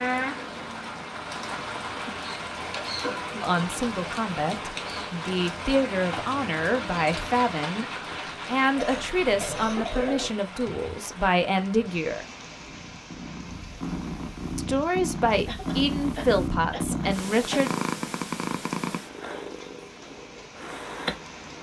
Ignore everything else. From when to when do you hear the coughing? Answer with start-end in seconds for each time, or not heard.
3.0-3.6, 8.8-10.3, 15.4-17.8.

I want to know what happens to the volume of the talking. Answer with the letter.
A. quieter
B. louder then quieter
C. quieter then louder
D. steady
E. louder
D.